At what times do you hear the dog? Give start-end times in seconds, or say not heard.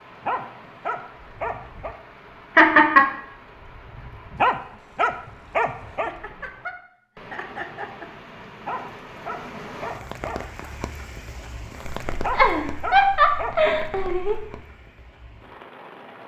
0.2-1.9, 4.3-6.1, 8.7-10.4, 12.2-13.6.